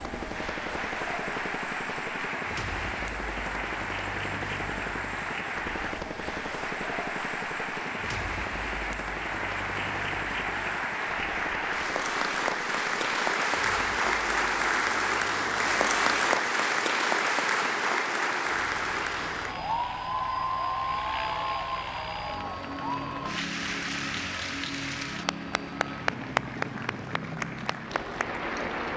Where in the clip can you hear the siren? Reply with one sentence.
The siren can't be heard in this clip.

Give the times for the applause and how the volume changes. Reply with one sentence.
You can hear the applause from 0.0 to 28.9 s, getting louder then quieter.